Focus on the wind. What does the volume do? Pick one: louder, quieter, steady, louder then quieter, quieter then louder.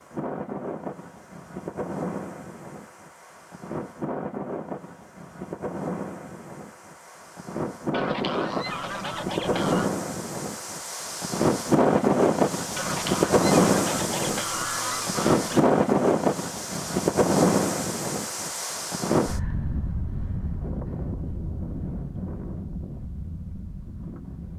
louder then quieter.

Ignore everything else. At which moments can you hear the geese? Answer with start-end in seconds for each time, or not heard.
7.9-9.9, 12.8-15.7.